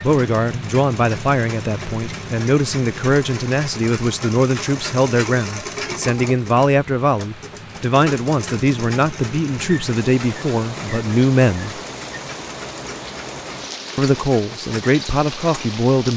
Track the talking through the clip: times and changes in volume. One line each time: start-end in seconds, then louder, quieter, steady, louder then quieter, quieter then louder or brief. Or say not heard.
0.0-11.8 steady
13.9-16.1 brief.